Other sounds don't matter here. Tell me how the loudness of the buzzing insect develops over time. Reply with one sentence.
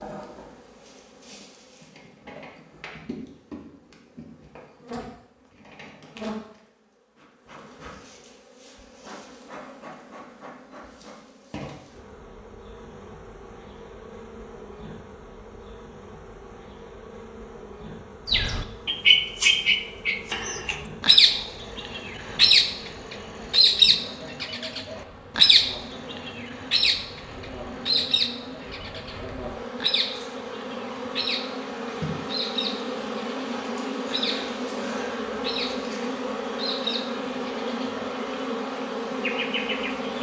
The loudness of the buzzing insect goes up.